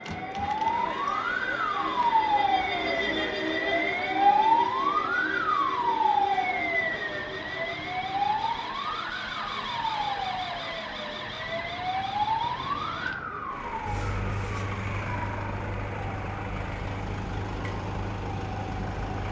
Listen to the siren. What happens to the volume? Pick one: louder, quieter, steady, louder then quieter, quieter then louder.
quieter.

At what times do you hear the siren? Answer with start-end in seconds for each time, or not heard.
0.0-19.2.